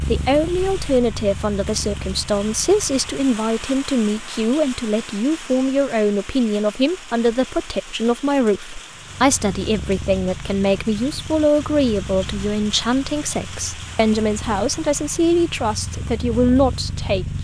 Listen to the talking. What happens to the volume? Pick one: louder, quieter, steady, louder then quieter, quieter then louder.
steady.